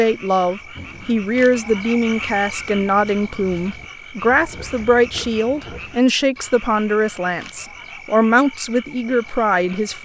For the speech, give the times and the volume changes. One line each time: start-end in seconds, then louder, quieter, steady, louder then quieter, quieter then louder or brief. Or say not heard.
0.0-10.0 steady.